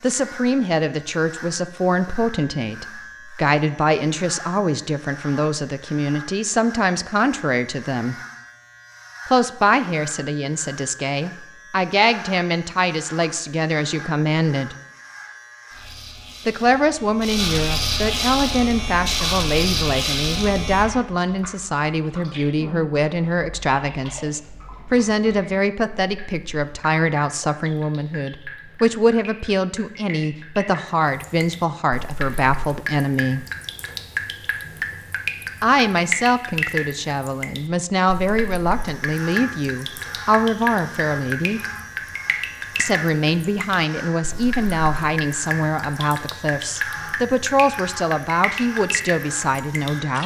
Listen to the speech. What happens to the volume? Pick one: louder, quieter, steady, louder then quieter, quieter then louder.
steady.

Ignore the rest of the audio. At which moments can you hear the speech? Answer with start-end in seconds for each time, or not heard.
0.0-8.2, 9.2-14.8, 16.4-33.5, 35.6-41.6, 42.8-50.2.